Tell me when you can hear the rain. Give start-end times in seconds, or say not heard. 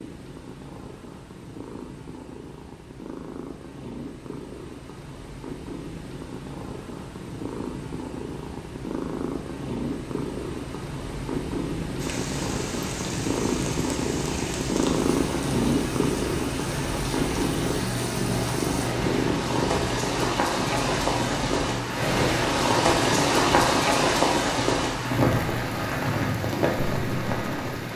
11.9-27.9.